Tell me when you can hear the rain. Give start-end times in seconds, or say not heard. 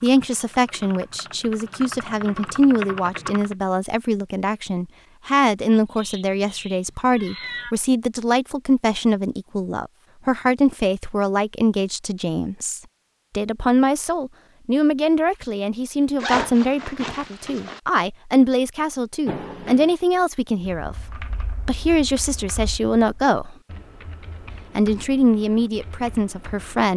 not heard.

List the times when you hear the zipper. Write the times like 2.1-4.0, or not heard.
16.2-17.8.